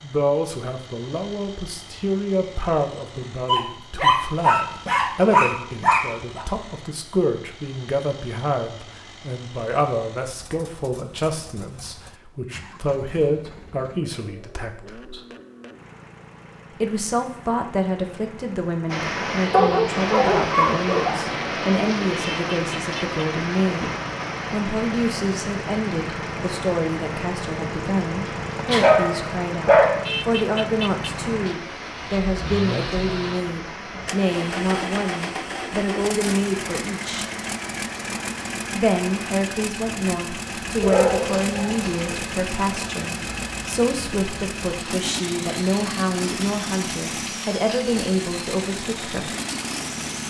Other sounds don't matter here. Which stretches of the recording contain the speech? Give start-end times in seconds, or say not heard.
0.0-15.2, 16.8-23.9, 24.5-37.2, 38.7-49.3.